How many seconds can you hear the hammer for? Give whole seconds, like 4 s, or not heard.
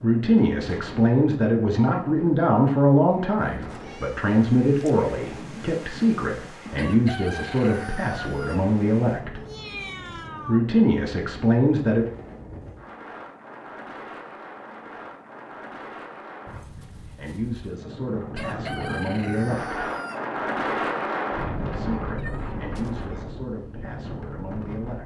not heard.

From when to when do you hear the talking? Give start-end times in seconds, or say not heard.
0.0-9.4, 10.4-12.1, 16.9-19.9, 21.7-25.0.